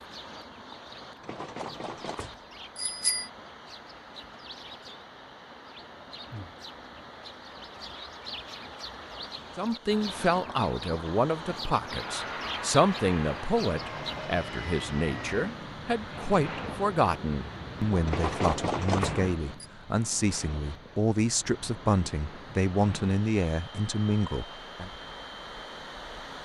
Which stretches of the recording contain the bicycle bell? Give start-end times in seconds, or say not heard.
1.2-3.3, 18.1-19.6.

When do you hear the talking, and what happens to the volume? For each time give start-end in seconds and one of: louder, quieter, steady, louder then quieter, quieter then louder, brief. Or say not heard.
9.6-24.9 steady.